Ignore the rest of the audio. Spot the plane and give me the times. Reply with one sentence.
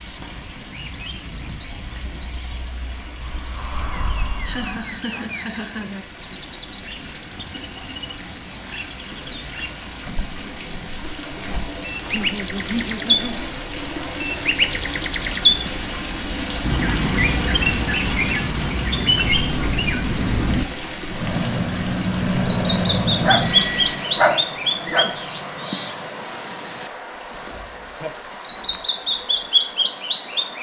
The plane can be heard from 0.2 to 4.8 s and from 21.1 to 26.2 s.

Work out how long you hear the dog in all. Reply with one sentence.
You can hear the dog for 2 seconds altogether.